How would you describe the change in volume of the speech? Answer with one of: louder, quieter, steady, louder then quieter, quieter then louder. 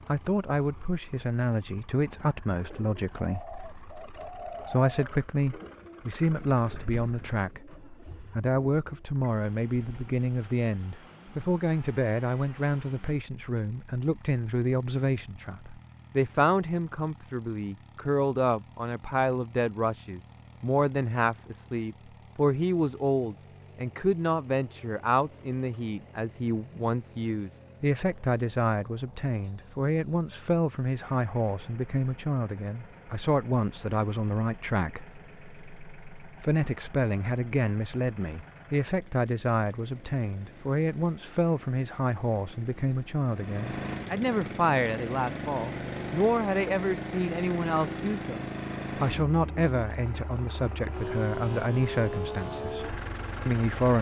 steady.